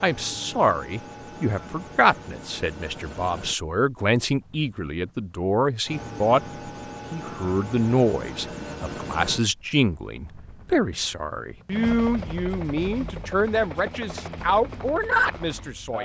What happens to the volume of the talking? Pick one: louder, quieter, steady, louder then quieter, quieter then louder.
steady.